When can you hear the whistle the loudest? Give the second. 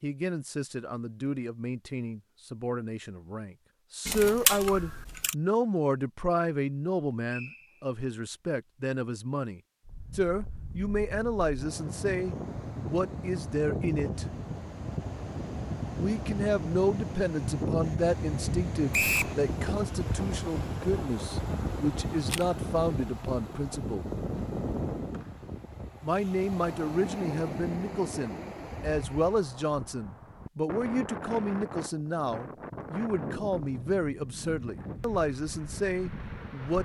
19 s.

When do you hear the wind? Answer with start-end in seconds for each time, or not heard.
9.8-36.8.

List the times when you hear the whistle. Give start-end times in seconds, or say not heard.
7.2-7.8, 18.9-19.4, 25.1-25.6.